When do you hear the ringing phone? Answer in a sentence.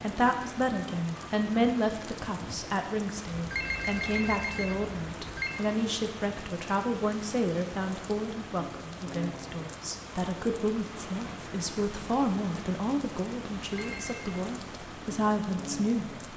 The ringing phone can be heard from 3.4 to 5.6 s and from 13.6 to 14.3 s.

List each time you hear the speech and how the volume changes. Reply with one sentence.
You can hear the speech from 0.0 to 16.3 s, at a steady volume.